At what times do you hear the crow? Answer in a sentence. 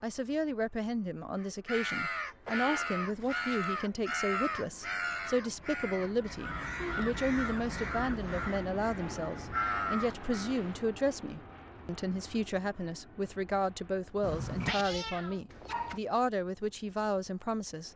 You can hear the crow from 1.4 to 10.6 s.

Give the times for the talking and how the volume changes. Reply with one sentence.
The talking can be heard from 0.0 to 17.9 s, at a steady volume.